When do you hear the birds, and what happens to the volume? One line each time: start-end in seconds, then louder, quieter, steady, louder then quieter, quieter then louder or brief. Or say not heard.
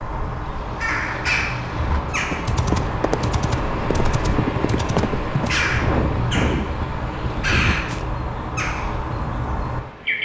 0.0-10.2 steady.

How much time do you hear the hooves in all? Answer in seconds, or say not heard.
6 s.